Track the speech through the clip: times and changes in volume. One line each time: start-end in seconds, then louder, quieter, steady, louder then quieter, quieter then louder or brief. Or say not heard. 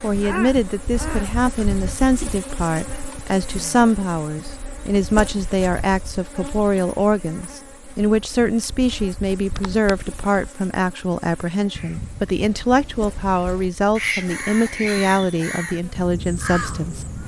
0.0-17.0 steady.